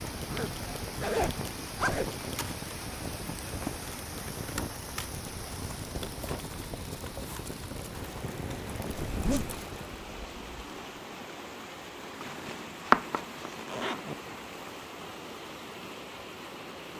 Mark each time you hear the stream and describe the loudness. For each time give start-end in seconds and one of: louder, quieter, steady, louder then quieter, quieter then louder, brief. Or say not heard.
0.0-16.9 steady.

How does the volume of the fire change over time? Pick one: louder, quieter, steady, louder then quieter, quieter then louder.
steady.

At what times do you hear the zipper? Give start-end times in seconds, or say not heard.
0.2-2.1, 9.1-9.6, 12.9-14.2.